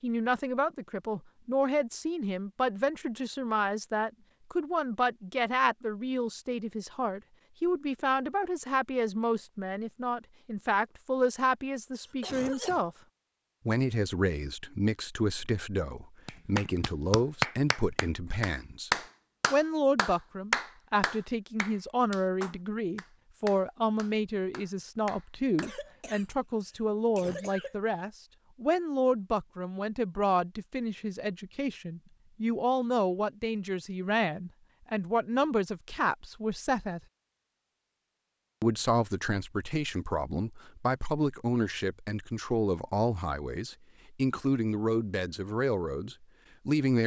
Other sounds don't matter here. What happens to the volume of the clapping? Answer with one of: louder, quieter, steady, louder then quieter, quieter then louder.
quieter.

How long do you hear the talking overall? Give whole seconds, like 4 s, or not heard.
44 s.